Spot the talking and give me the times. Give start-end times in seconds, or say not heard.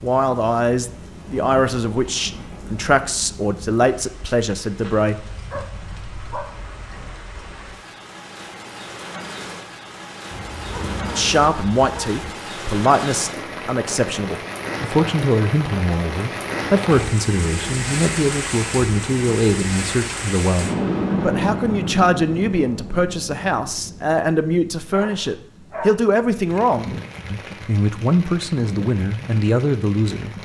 0.0-5.2, 11.2-30.4.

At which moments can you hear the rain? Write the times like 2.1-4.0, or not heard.
0.0-30.4.